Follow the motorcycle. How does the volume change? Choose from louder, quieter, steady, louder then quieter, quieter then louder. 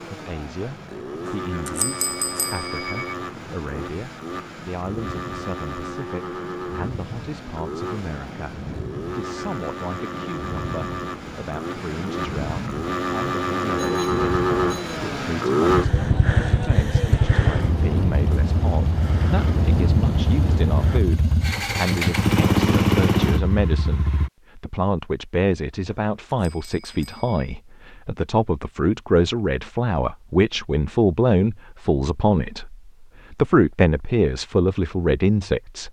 louder.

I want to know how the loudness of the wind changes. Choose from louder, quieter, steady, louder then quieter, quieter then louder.
louder.